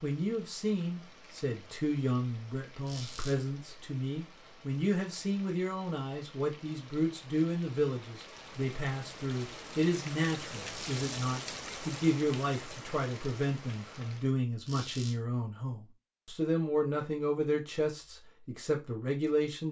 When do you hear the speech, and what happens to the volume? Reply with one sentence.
The speech can be heard from 0.0 to 19.6 s, at a steady volume.